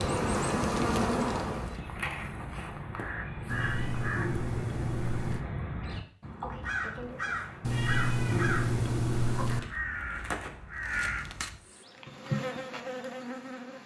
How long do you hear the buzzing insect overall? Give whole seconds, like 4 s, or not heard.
4 s.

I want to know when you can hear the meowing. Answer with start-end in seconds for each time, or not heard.
3.5-5.5, 7.6-9.6.